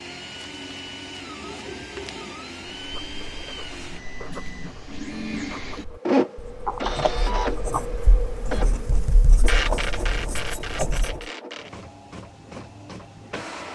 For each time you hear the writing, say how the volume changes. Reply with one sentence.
You can hear the writing from 2.8 to 11.2 s, getting louder.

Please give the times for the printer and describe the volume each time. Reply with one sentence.
You can hear the printer from 0.0 to 13.7 s, getting louder then quieter.